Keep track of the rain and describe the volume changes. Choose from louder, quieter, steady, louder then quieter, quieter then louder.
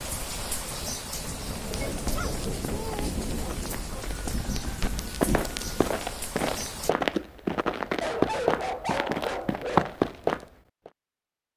steady.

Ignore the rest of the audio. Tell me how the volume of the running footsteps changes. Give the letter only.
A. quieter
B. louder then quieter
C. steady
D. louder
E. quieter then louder
D.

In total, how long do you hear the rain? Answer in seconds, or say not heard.
7 s.